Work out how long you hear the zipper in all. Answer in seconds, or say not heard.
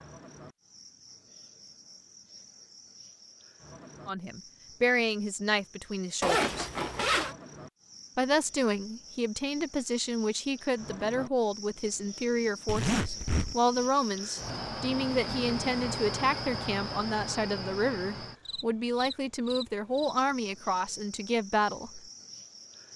2 s.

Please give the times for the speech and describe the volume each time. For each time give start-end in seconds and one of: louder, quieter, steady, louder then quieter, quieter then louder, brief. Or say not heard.
4.0-6.7 brief
8.2-22.0 steady.